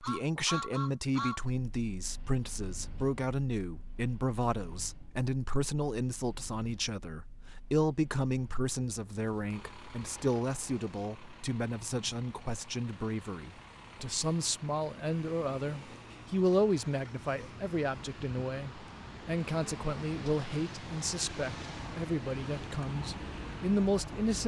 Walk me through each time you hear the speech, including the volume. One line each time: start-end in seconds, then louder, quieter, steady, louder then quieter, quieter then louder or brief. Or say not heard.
0.0-24.4 steady.